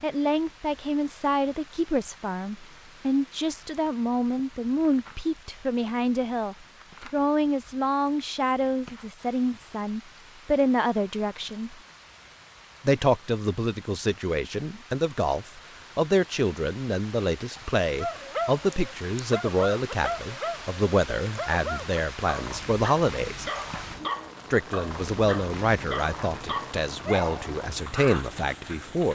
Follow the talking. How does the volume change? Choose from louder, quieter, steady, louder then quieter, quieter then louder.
steady.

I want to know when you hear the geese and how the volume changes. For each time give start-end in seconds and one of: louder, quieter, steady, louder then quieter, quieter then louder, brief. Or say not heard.
not heard.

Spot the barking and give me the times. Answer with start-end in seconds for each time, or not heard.
18.0-28.2.